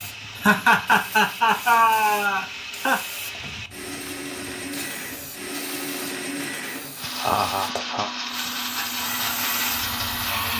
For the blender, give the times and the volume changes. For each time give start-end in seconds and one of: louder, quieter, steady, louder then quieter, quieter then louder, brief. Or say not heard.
0.0-10.5 louder.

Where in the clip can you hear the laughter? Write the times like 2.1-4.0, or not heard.
0.3-3.0, 7.2-8.1.